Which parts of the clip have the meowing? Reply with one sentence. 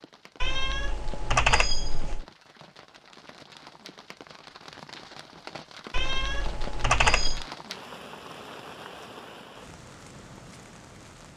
You can hear the meowing from 0.4 to 2.2 s and from 5.9 to 7.5 s.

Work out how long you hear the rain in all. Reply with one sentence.
The rain can be heard for 11 seconds in total.